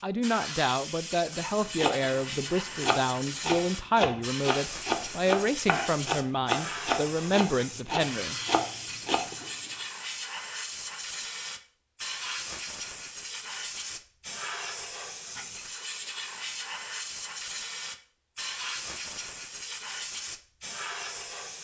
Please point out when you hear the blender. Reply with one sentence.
You can't hear the blender here.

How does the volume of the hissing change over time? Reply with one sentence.
The loudness of the hissing stays about the same.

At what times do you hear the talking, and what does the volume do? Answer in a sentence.
The talking can be heard from 0.0 to 8.3 s, at a steady volume.